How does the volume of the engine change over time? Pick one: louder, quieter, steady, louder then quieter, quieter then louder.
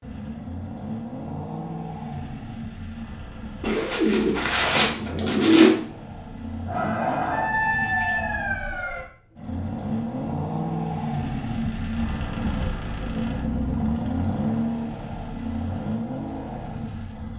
louder.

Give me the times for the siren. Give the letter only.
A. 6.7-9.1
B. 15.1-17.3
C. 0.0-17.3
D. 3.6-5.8
A.